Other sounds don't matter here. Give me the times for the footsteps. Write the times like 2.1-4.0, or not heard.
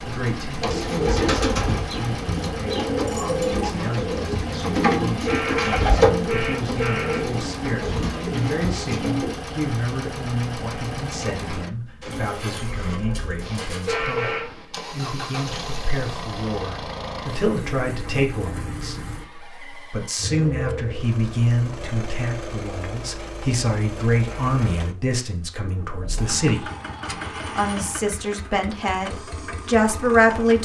not heard.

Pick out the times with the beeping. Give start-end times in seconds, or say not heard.
not heard.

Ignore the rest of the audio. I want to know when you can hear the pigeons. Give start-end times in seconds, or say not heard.
0.6-9.3.